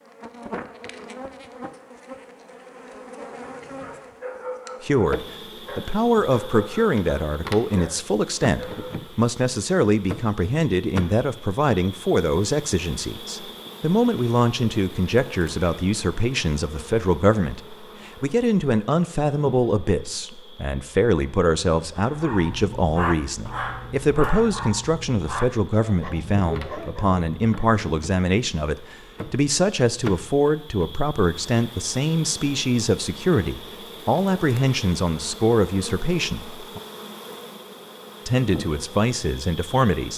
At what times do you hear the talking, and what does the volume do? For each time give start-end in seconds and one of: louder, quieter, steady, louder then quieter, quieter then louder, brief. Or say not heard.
4.8-36.8 steady
38.2-40.1 brief.